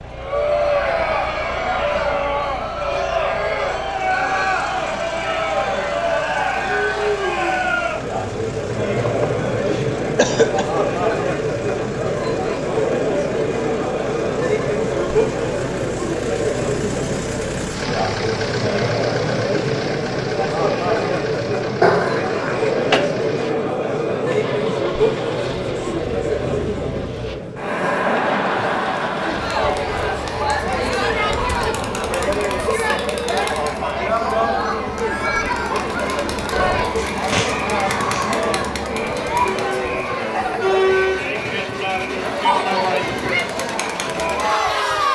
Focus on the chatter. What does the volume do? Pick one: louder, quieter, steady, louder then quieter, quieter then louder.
steady.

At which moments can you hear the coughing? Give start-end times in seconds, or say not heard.
9.1-10.7, 21.8-23.0, 37.0-38.5.